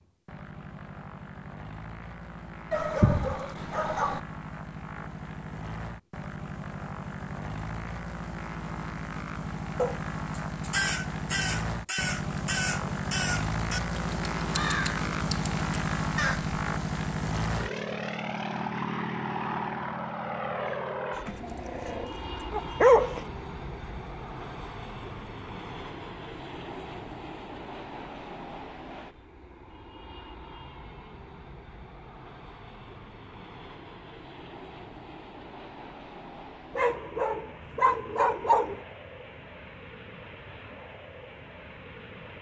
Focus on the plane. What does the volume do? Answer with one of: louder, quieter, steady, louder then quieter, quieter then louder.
louder then quieter.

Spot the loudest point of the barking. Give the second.
23 s.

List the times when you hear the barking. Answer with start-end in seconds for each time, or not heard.
2.7-4.2, 21.2-23.2, 36.8-38.8.